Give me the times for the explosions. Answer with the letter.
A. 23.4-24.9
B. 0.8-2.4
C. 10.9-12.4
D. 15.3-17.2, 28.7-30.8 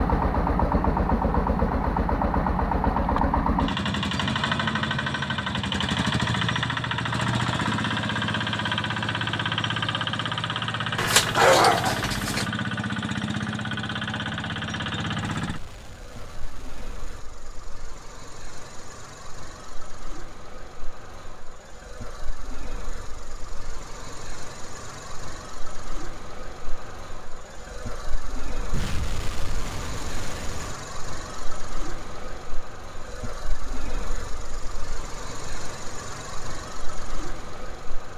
D.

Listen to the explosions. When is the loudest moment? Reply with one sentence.
The volume of the explosions peaks at 29 seconds.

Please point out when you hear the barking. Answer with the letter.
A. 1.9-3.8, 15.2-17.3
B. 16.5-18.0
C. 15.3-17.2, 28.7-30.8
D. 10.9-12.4
D.